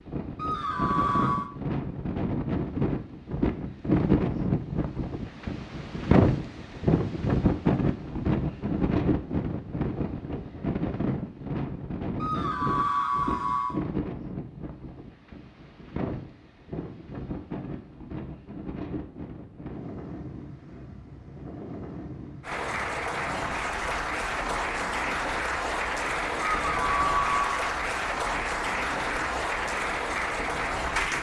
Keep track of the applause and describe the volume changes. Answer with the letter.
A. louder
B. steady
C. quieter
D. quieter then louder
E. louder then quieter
B.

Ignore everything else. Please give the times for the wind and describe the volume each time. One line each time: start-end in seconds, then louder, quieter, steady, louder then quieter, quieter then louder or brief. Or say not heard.
0.0-31.1 quieter.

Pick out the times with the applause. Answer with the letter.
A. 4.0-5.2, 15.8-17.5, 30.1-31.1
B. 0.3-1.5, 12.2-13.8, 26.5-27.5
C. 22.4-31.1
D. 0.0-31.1
C.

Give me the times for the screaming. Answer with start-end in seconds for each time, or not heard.
0.3-1.5, 12.2-13.8, 26.5-27.5.